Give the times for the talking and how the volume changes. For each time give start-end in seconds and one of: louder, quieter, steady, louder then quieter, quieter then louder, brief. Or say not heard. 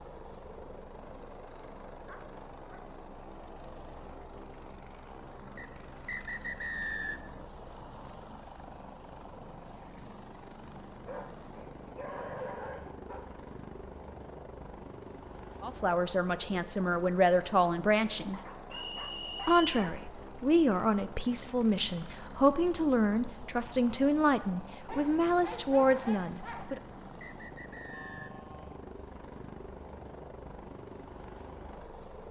15.6-18.4 brief
19.4-26.8 steady.